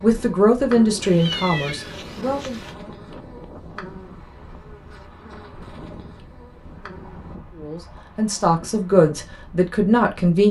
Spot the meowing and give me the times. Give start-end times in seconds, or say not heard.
1.0-2.8.